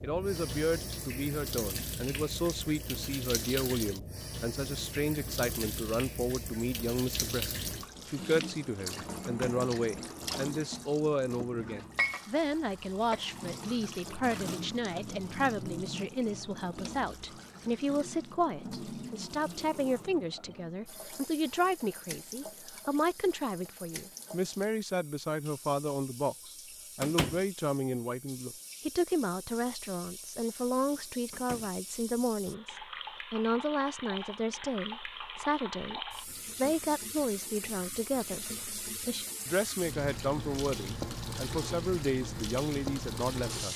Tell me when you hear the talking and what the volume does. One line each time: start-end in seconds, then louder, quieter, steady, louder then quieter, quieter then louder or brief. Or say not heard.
0.0-43.7 steady.